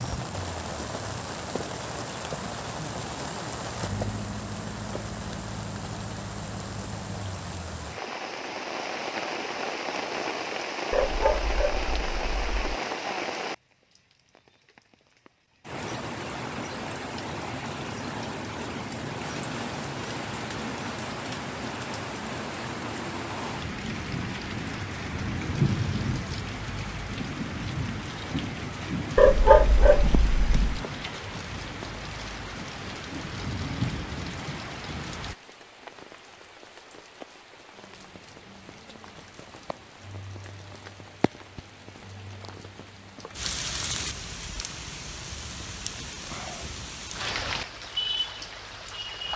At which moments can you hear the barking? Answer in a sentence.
You can hear the barking from 10.9 to 12.8 s and from 29.1 to 30.6 s.